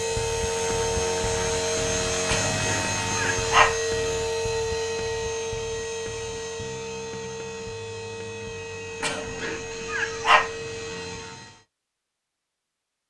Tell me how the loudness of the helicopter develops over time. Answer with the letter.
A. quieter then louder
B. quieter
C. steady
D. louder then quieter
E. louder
B.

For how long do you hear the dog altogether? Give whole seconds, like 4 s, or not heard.
3 s.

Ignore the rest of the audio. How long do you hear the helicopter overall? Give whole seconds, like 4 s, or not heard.
12 s.